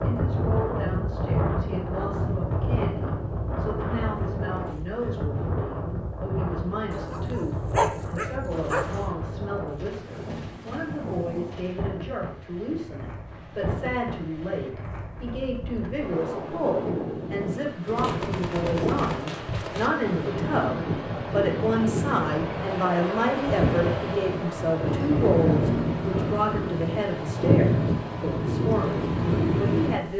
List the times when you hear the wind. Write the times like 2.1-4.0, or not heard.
0.0-30.1.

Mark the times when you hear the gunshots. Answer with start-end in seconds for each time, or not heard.
8.4-11.8, 17.9-19.9.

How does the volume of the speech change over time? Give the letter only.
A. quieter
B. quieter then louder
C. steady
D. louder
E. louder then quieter
D.